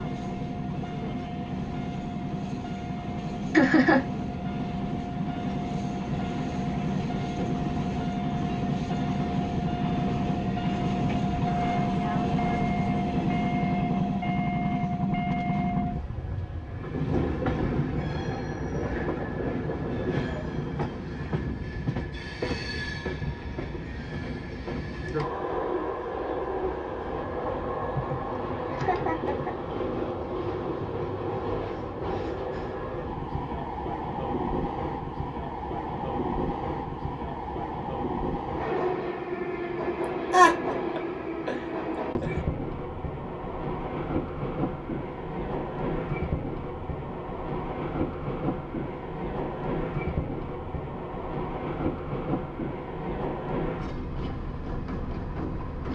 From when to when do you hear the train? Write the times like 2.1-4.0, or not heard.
0.0-55.9.